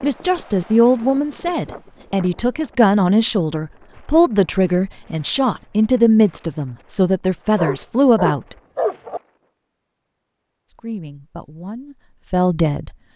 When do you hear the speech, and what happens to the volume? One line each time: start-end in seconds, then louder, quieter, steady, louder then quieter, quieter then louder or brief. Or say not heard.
0.0-8.6 steady
10.7-12.9 brief.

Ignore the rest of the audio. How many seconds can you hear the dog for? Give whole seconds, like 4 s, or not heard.
2 s.